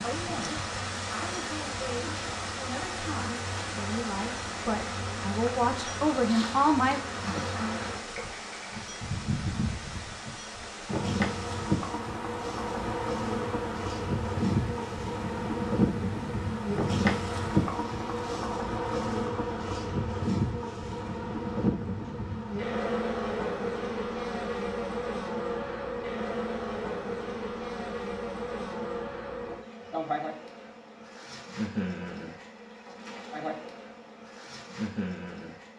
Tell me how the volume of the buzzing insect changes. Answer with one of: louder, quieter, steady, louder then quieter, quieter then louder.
louder then quieter.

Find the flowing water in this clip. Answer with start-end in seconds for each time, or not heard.
0.0-18.4.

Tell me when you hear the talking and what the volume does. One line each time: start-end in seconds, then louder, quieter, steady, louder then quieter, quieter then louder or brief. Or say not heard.
0.0-7.0 louder.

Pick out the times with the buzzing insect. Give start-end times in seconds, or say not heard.
0.0-35.7.